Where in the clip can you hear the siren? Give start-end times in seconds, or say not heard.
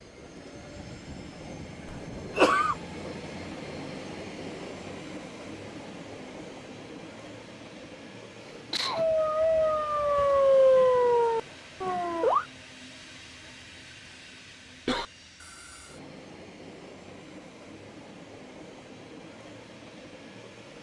8.9-12.4.